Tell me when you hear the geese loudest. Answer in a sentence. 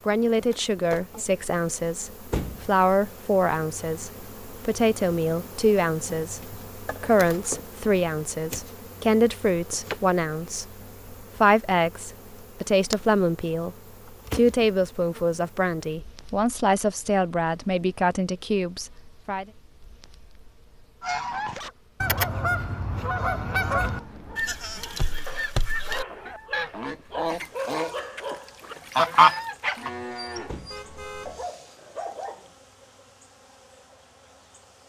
The loudest moment of the geese is at 29 seconds.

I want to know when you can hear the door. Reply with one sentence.
You can hear the door from 2.3 to 2.7 s and from 30.4 to 30.9 s.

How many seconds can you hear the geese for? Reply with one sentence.
You can hear the geese for 9 seconds altogether.